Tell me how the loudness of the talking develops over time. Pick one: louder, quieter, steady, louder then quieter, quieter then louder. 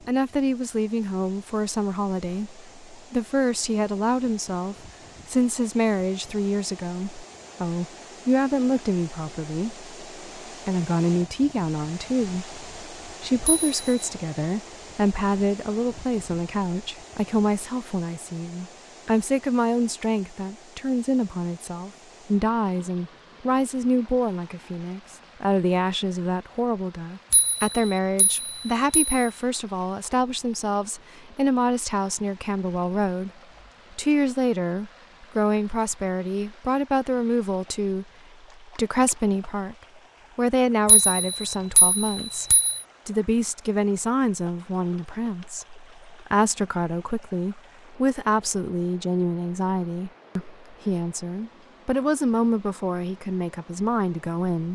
steady.